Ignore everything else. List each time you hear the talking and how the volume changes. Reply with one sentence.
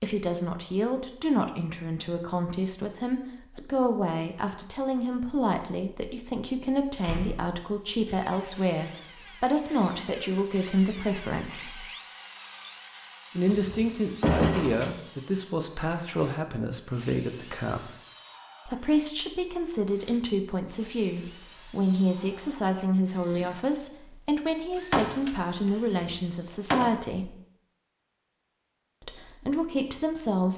You can hear the talking from 0.0 to 11.8 s, at a steady volume; from 13.3 to 17.9 s, at a steady volume; from 18.6 to 27.4 s, at a steady volume; and briefly from 29.0 to 30.5 s.